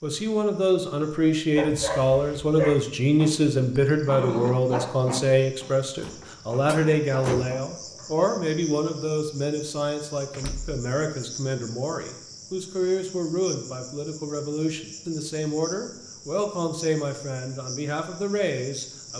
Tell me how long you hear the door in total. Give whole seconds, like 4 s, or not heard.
2 s.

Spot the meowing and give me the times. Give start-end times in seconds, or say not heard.
not heard.